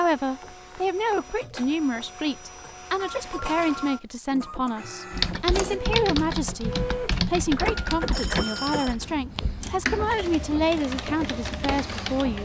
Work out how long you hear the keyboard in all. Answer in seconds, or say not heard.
7 s.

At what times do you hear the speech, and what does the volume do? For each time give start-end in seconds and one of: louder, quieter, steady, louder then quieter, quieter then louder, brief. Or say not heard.
0.0-12.4 steady.